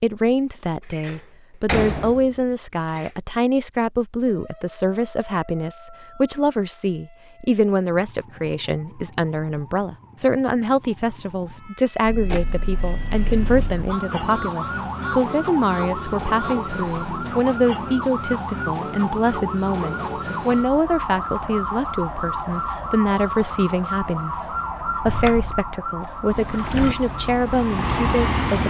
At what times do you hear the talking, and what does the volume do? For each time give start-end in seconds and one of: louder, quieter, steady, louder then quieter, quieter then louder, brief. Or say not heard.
0.0-28.6 steady.